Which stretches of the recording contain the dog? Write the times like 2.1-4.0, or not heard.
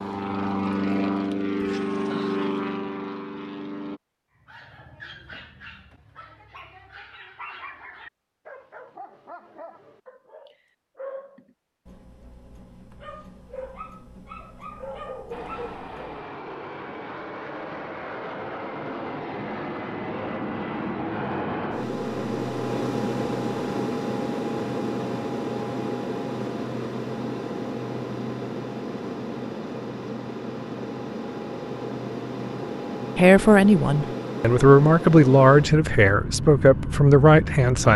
4.4-16.1.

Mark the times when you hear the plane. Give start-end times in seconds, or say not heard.
0.0-4.0, 15.3-37.9.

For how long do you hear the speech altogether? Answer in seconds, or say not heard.
5 s.